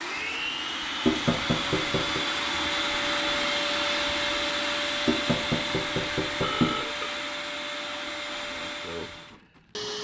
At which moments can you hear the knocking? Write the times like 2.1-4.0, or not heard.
1.1-2.2, 5.0-6.8.